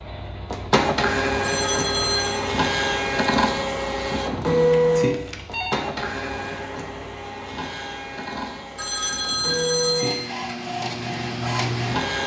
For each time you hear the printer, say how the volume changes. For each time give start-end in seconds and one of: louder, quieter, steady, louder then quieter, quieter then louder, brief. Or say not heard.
0.0-12.2 quieter then louder.